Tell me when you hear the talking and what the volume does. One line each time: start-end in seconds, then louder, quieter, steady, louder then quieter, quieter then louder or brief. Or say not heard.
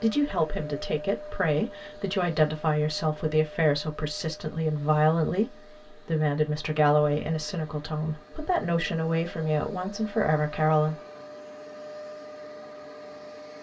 0.0-10.9 steady.